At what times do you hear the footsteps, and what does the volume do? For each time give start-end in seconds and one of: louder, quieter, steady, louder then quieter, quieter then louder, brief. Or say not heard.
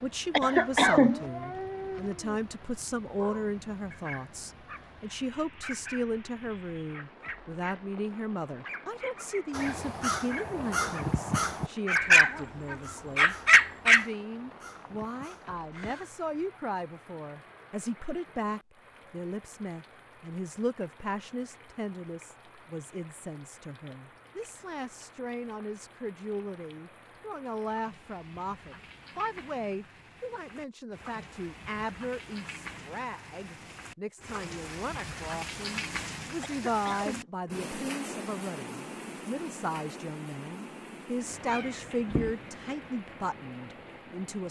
not heard.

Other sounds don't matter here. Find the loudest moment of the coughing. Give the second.
1 s.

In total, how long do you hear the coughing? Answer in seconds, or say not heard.
2 s.